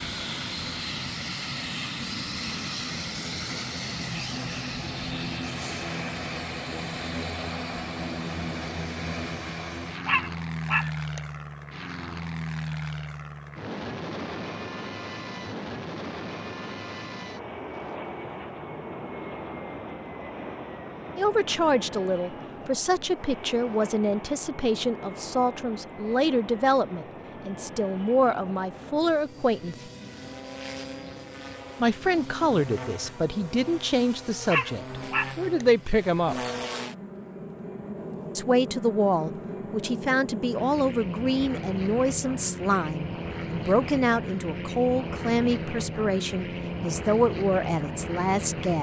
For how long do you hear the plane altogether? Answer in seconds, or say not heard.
49 s.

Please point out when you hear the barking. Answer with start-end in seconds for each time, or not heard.
10.1-11.2, 34.5-35.6.